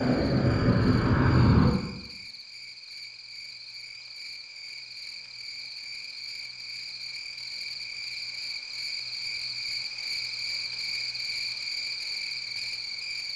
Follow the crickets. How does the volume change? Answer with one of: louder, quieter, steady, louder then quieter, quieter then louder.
louder.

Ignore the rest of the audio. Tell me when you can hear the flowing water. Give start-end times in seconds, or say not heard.
not heard.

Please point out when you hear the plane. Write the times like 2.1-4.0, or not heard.
0.0-1.8.